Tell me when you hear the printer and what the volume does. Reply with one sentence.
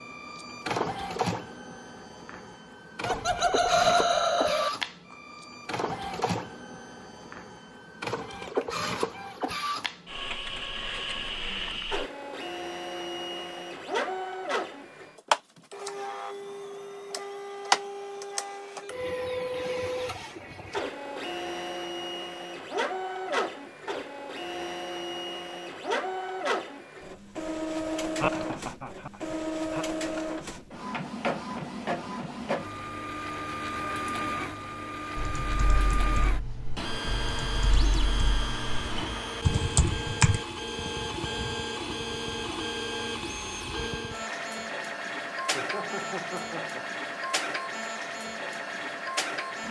You can hear the printer from 0.0 to 49.6 s, at a steady volume.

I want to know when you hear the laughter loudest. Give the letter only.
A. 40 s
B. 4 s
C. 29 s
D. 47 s
B.